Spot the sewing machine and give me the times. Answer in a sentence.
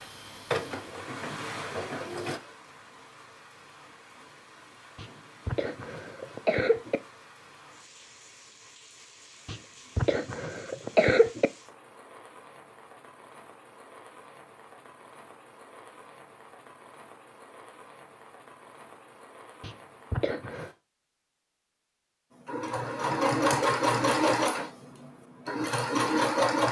The sewing machine can be heard from 0.0 to 2.4 s and from 22.4 to 26.6 s.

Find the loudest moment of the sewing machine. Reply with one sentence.
The volume of the sewing machine peaks at 24 seconds.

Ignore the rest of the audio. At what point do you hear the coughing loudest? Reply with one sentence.
The volume of the coughing peaks at 11 seconds.